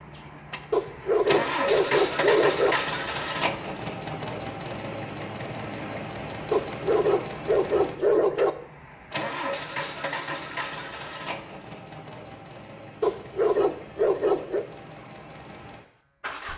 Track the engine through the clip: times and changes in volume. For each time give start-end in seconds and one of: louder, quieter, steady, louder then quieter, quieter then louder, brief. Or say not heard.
0.0-16.5 quieter.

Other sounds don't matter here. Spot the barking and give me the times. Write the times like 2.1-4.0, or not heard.
0.7-2.8, 6.5-8.5, 13.0-14.7.